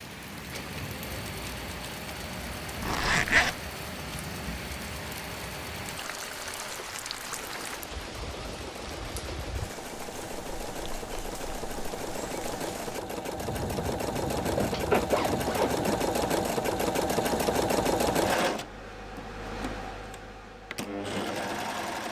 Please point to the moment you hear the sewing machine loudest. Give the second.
18 s.